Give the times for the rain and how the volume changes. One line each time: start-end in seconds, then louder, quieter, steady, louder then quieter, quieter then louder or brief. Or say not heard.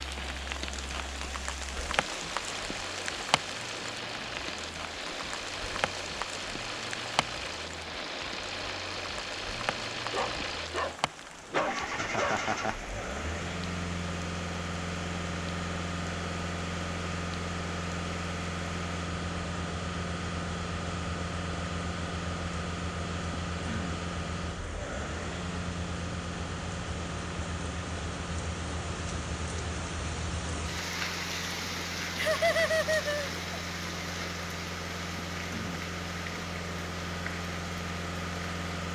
0.0-38.9 quieter then louder.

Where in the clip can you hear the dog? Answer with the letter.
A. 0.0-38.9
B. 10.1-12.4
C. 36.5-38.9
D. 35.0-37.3
B.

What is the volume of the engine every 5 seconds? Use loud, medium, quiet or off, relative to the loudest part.
medium, loud, loud, loud, loud, loud, medium, loud.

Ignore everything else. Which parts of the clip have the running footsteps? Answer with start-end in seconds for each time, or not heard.
not heard.